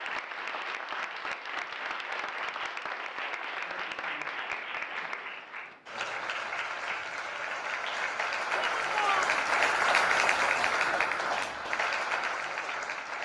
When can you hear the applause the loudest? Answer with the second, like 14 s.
10 s.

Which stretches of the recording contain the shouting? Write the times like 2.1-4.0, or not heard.
8.6-9.4.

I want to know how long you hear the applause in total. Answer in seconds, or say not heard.
13 s.